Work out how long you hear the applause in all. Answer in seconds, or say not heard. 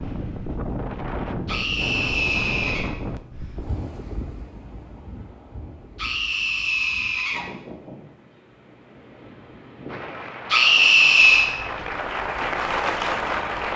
4 s.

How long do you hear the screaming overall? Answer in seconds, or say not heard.
4 s.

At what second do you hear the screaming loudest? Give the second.
11 s.